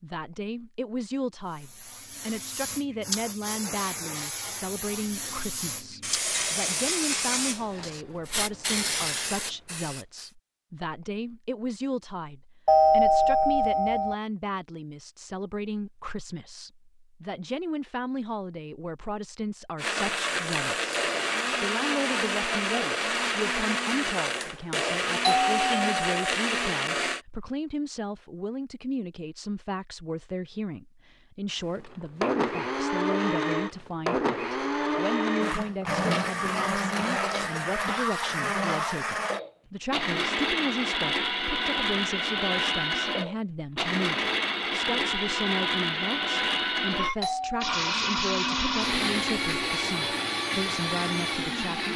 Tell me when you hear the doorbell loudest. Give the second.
13 s.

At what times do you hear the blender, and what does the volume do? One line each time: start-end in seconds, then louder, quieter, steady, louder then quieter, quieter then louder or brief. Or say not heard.
19.8-27.2 steady
31.7-51.9 steady.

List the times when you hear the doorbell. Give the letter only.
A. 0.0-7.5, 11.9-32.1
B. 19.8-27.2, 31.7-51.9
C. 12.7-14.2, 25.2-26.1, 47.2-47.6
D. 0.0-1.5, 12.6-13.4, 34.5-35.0
C.